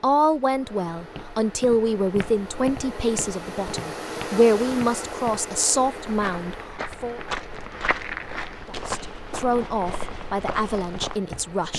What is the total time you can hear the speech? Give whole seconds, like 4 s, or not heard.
10 s.